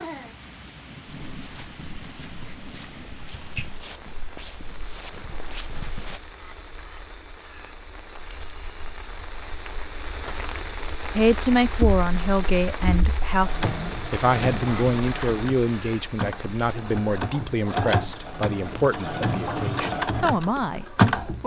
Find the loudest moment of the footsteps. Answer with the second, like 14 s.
6 s.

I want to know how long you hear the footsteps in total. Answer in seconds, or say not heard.
5 s.